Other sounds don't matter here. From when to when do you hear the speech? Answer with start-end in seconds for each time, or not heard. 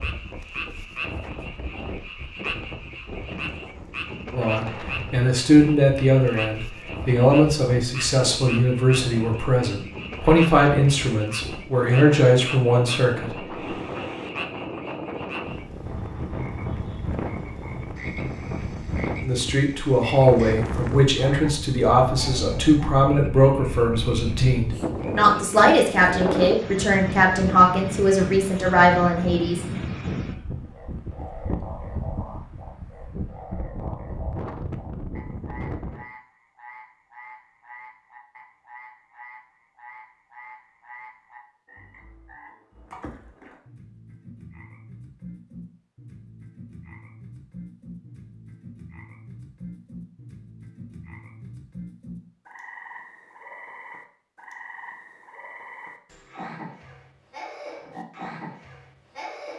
4.3-13.4, 19.2-29.6.